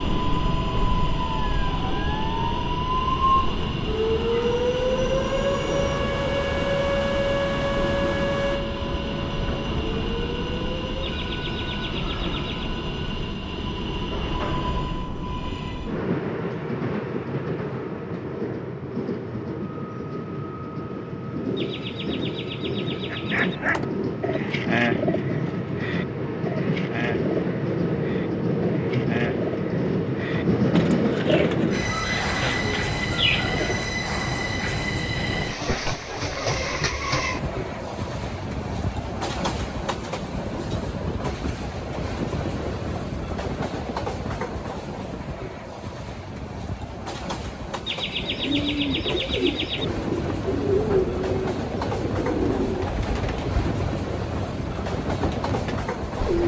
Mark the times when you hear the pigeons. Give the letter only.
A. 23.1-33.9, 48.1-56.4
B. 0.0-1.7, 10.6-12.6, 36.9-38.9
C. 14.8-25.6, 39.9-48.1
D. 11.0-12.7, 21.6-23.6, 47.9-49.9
A.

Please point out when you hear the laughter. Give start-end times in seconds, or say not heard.
11.0-12.7, 21.6-23.6, 47.9-49.9.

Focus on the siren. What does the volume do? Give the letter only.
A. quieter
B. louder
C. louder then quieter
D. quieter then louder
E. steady
C.